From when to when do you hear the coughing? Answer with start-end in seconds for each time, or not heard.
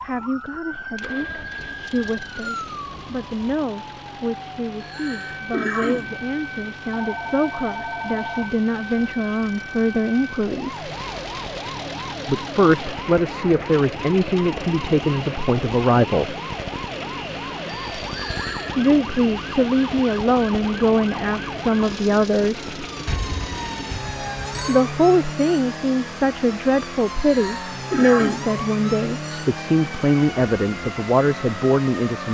4.8-6.2, 18.1-18.8, 27.1-28.6.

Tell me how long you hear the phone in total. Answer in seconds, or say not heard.
4 s.